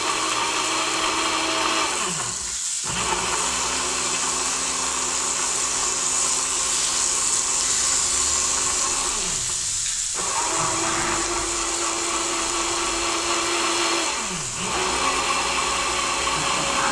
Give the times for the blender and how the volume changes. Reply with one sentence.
The blender can be heard from 0.0 to 16.8 s, getting quieter then louder.